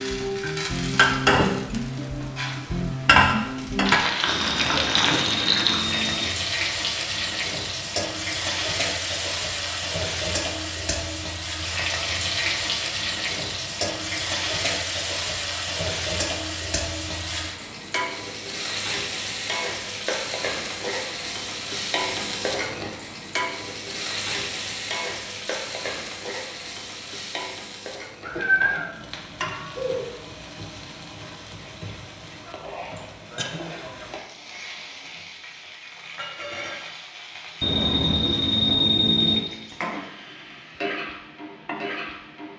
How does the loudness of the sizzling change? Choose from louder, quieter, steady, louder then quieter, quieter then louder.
quieter.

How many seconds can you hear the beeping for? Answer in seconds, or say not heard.
4 s.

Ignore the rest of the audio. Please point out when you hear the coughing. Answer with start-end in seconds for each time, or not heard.
4.5-5.4, 33.0-33.6.